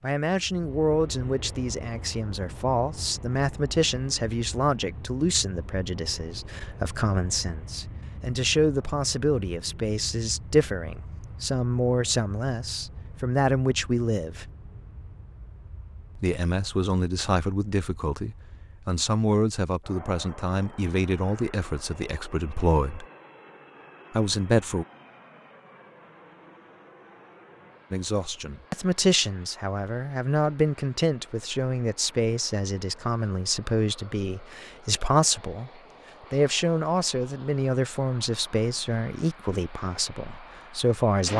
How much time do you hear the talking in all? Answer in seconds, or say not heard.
35 s.